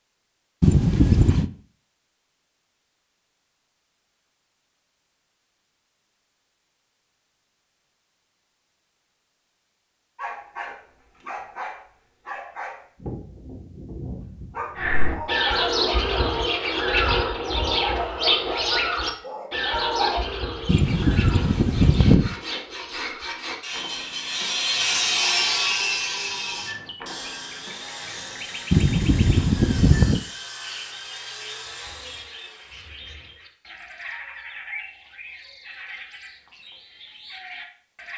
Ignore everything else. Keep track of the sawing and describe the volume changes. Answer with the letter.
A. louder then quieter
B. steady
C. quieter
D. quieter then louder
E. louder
A.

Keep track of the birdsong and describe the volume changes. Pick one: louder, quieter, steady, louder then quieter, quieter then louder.
quieter.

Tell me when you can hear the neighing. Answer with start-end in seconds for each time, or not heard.
0.6-1.4, 20.6-22.4, 28.7-30.2.